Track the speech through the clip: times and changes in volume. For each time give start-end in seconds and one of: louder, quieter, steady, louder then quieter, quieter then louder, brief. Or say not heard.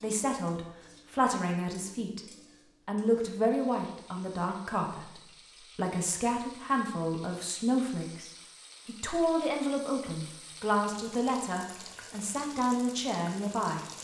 0.0-2.2 brief
2.9-13.8 steady.